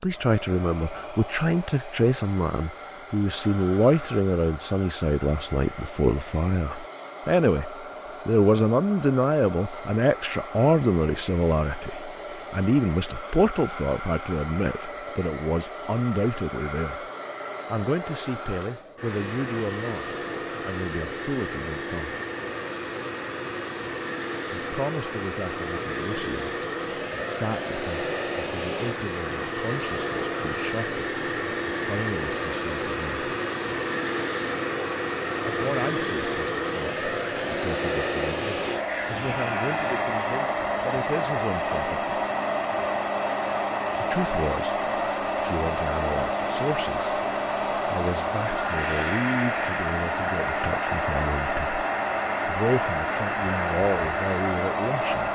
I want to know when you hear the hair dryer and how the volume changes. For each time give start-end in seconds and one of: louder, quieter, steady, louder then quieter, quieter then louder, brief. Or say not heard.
0.0-55.3 louder.